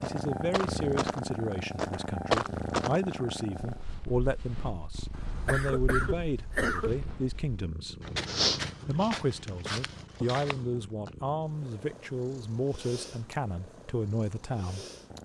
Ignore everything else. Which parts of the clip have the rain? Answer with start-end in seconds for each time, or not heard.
not heard.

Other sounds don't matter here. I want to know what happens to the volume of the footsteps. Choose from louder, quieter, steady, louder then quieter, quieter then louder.
quieter then louder.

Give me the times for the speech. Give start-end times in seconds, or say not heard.
0.0-8.0, 8.8-14.8.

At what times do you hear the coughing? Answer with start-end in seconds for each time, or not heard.
5.1-7.0.